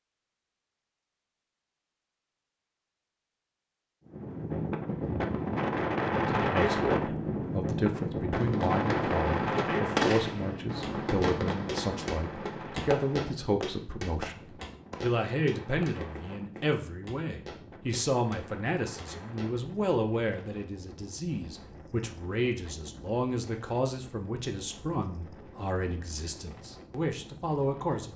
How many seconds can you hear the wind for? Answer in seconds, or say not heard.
24 s.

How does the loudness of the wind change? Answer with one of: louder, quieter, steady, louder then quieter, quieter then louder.
quieter.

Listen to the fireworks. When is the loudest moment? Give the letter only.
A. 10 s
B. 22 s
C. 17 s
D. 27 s
A.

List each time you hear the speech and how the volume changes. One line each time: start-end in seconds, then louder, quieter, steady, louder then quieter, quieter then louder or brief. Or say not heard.
6.2-28.1 steady.